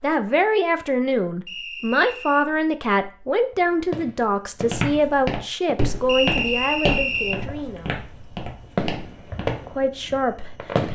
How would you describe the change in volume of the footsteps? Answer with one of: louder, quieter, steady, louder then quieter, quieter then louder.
quieter.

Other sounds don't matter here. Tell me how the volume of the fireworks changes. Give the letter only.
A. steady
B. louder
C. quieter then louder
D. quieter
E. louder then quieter
C.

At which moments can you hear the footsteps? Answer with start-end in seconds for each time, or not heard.
4.7-9.7.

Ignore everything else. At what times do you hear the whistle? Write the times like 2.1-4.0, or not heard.
1.4-2.5, 6.0-7.4.